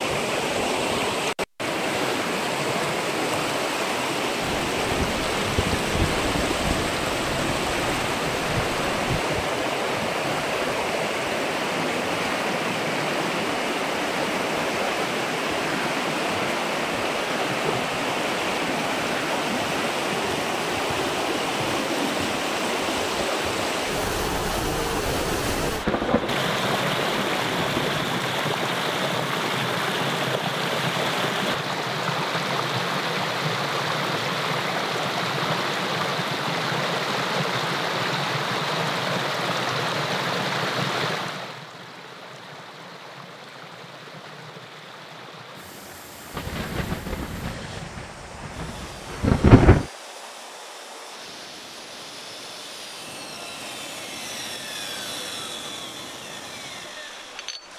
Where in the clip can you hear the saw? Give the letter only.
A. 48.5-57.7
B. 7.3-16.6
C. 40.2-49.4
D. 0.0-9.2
A.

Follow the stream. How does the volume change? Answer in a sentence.
The loudness of the stream goes down.